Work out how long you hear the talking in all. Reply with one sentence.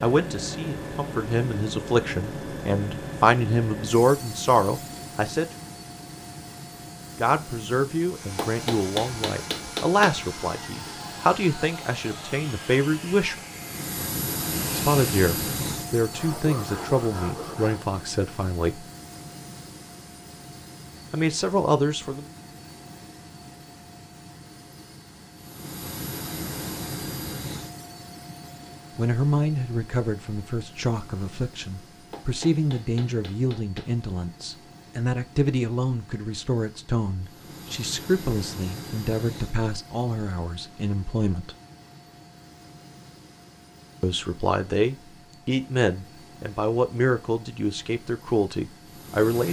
The talking can be heard for 35 seconds in total.